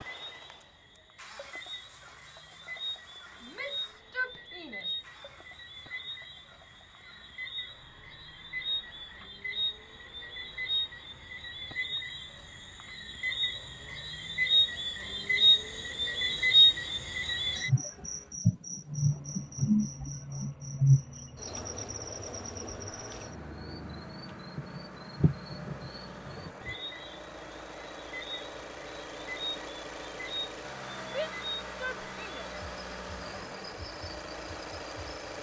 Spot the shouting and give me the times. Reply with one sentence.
You can hear the shouting from 3.4 to 5.0 s and from 31.1 to 33.0 s.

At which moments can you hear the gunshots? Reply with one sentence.
The gunshots can't be heard in this clip.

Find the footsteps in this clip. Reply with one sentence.
The footsteps can't be heard in this clip.